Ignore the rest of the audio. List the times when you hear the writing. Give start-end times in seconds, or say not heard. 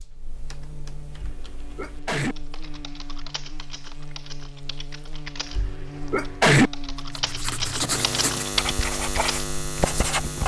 7.1-10.4.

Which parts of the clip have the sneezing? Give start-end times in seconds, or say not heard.
1.2-2.4, 5.5-6.7.